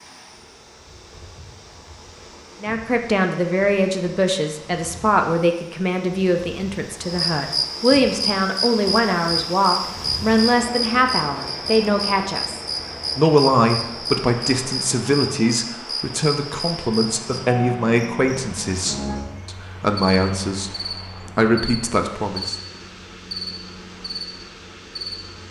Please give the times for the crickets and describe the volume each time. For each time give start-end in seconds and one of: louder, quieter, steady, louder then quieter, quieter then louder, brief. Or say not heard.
7.0-25.4 quieter.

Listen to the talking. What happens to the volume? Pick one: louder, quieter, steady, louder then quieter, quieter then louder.
steady.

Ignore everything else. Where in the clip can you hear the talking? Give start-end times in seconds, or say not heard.
2.6-22.6.